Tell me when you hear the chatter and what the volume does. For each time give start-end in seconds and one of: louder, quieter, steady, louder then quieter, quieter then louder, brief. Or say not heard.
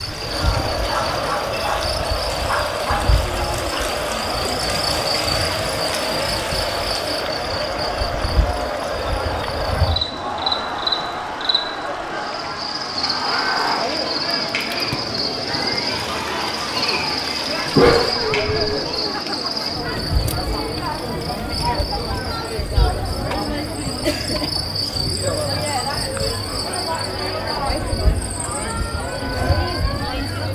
0.0-30.5 steady.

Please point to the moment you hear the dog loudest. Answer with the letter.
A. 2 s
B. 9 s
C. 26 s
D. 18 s
D.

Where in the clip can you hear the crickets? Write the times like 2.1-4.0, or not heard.
0.0-30.5.